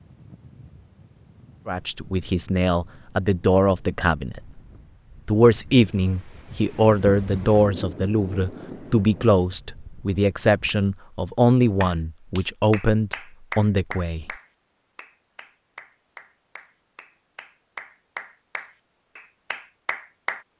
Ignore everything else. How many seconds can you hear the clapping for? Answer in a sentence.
You can hear the clapping for 9 seconds altogether.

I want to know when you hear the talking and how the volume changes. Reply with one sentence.
The talking can be heard briefly from 1.6 to 4.6 s; and from 5.2 to 14.2 s, at a steady volume.